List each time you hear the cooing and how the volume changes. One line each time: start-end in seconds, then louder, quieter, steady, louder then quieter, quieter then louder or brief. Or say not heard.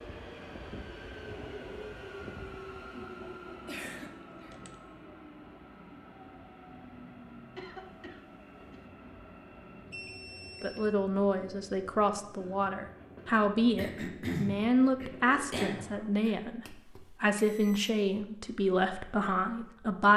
not heard.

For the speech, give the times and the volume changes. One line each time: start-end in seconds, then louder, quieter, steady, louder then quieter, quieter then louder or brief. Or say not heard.
10.6-20.1 steady.